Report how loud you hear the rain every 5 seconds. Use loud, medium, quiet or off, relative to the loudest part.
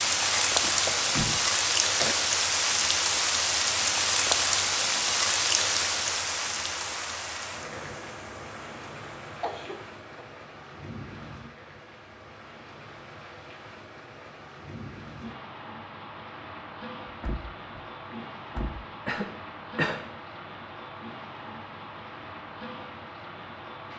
loud, medium, quiet, quiet, quiet.